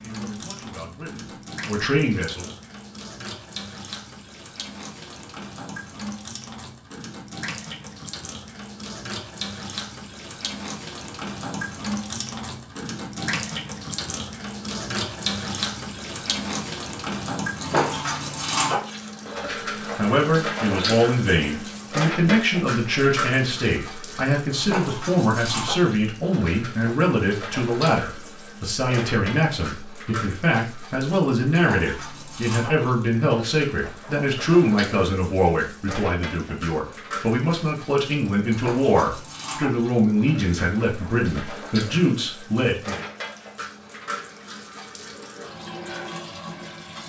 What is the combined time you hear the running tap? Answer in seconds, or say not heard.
47 s.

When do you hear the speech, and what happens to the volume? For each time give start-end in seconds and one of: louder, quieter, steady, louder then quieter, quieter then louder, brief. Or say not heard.
0.0-2.5 brief
19.9-43.0 steady.